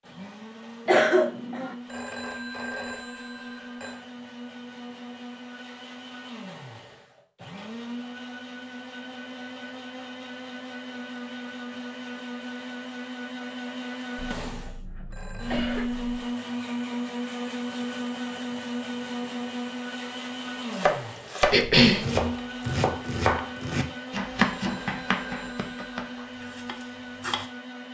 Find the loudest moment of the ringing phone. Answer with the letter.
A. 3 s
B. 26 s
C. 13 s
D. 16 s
A.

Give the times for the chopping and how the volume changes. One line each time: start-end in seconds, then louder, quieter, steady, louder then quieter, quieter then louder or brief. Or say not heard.
20.7-27.5 quieter.